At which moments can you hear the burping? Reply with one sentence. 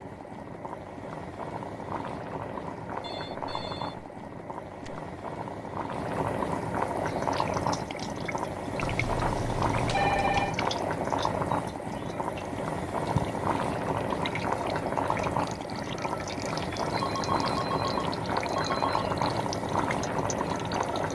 The burping can't be heard in this clip.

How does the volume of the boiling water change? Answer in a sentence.
The loudness of the boiling water goes up.